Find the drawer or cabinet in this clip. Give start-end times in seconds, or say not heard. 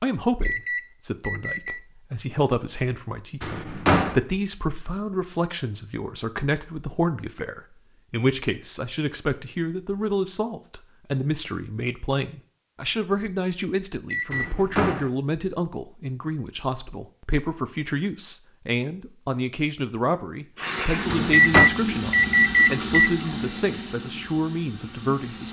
3.4-4.2, 14.3-15.1, 21.1-21.7.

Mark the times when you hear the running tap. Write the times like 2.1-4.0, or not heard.
20.6-25.4.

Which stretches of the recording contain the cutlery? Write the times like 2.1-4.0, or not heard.
not heard.